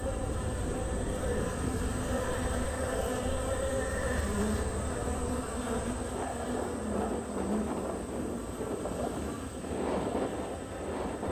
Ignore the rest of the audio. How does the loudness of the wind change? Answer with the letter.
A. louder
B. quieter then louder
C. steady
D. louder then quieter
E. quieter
B.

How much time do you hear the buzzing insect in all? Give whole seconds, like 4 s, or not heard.
11 s.